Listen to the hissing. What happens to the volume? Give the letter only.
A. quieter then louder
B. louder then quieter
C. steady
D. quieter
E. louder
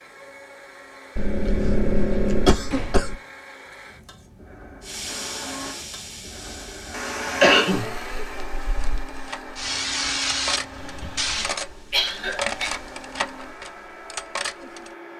A.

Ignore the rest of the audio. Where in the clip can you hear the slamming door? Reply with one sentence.
The slamming door can be heard from 2.7 to 4.0 s.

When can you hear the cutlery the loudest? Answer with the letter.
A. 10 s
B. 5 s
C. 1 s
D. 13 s
D.